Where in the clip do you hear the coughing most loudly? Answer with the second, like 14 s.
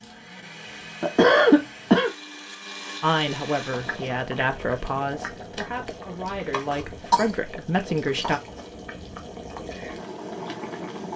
1 s.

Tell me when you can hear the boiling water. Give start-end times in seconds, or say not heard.
3.6-11.1.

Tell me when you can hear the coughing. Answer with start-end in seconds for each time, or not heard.
1.0-2.1, 6.5-7.2.